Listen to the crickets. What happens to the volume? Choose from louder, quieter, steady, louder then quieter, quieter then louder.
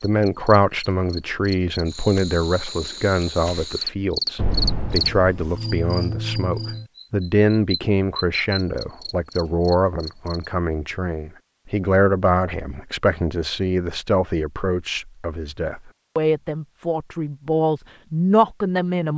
louder then quieter.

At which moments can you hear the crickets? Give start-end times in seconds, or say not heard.
0.0-10.6.